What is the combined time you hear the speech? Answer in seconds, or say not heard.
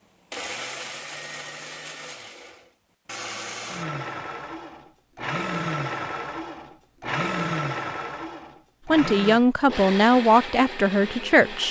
3 s.